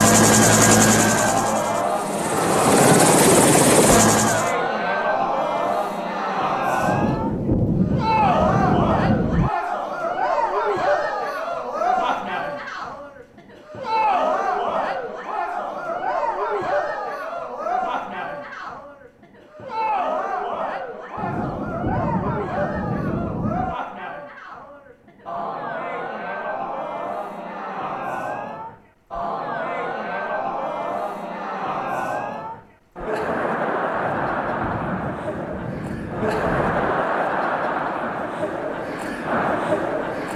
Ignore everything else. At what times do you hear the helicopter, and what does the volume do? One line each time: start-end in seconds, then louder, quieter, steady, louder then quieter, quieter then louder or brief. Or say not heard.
0.0-4.5 quieter then louder.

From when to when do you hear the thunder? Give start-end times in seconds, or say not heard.
6.8-9.5, 21.1-23.8, 34.0-37.0.